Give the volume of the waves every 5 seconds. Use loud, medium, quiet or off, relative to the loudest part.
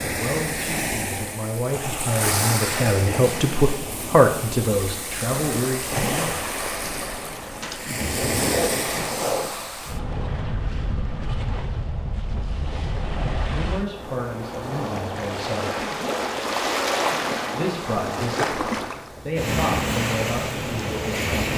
loud, loud, medium, loud, loud.